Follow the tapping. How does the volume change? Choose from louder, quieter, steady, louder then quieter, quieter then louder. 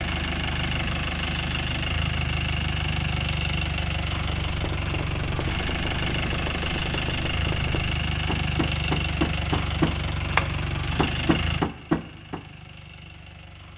louder.